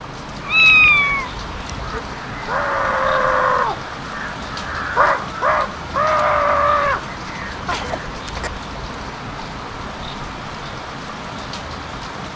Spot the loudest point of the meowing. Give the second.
1 s.